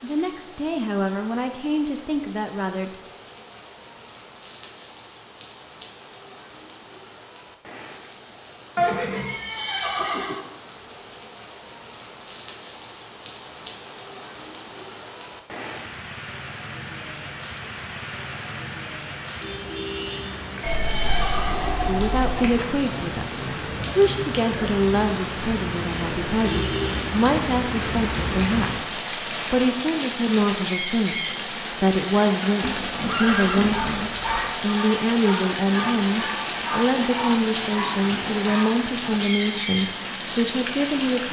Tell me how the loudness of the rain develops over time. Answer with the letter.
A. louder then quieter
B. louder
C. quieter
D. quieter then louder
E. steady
B.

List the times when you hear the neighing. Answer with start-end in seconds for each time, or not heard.
8.8-10.4, 20.6-22.6, 32.6-34.5.